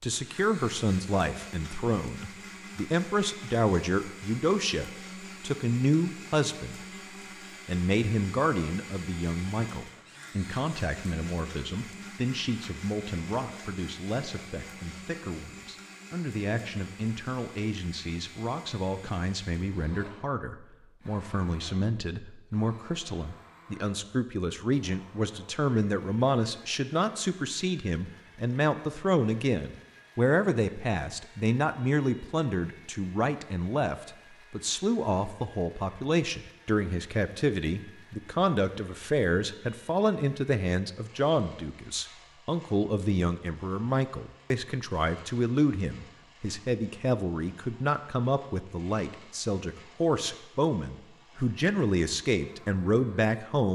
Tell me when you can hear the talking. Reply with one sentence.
The talking can be heard from 0.0 to 6.8 s and from 7.7 to 53.7 s.